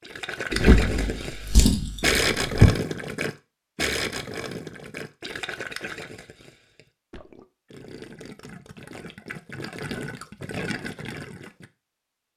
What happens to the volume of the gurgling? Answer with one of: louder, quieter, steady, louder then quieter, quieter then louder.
quieter then louder.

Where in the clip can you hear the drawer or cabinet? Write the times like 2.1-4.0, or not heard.
0.5-2.8.